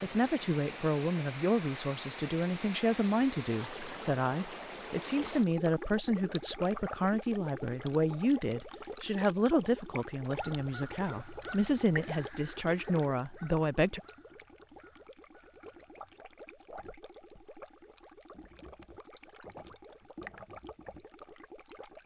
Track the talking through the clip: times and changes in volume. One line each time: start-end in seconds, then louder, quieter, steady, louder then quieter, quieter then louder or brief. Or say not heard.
0.0-14.0 steady.